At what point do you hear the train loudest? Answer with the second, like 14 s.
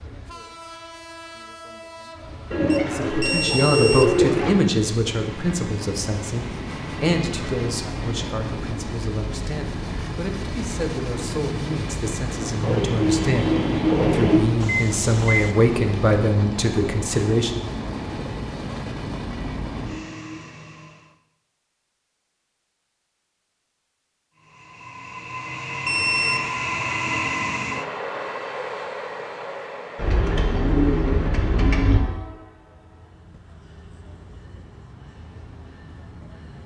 27 s.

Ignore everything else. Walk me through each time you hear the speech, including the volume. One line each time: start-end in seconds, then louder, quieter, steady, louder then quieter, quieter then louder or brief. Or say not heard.
2.9-17.6 quieter then louder.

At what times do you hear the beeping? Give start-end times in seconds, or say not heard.
2.6-4.1, 14.6-15.6, 25.9-26.4.